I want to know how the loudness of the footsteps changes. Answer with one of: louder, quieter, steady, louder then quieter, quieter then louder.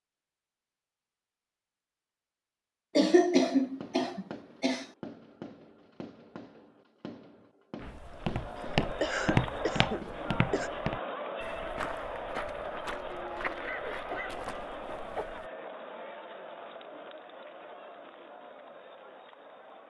quieter.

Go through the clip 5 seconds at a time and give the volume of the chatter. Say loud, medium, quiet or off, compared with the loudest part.
off, loud, loud, medium.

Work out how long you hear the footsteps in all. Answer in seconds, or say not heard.
8 s.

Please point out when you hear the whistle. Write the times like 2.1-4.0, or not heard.
not heard.